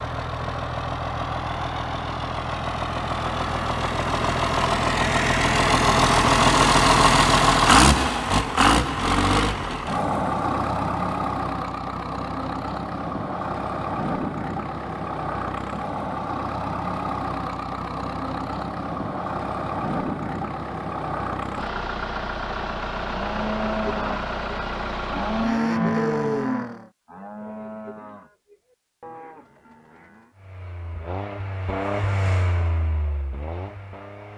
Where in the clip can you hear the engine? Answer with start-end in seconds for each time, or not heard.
0.0-26.9, 30.4-34.3.